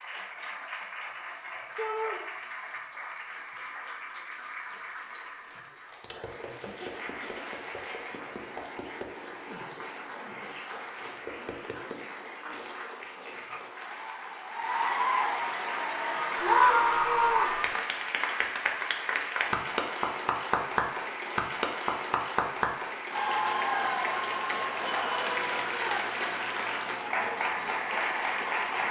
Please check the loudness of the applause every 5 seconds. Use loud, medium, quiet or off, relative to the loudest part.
medium, medium, medium, loud, loud, loud.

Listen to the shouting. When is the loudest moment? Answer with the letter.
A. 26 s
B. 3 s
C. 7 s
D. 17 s
D.